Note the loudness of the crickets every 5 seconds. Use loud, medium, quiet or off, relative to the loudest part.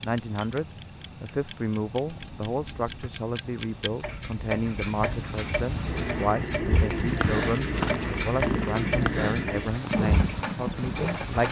quiet, loud, loud.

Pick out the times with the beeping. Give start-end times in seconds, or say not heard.
2.0-3.1, 6.3-7.3.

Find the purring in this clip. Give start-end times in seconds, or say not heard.
6.8-11.4.